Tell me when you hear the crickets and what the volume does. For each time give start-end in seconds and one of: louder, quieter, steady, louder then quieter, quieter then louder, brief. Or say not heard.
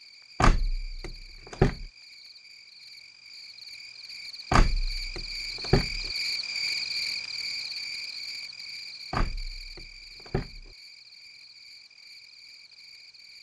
0.0-13.3 louder then quieter.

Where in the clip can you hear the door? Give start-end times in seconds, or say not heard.
0.4-1.9, 4.5-6.1, 9.1-10.7.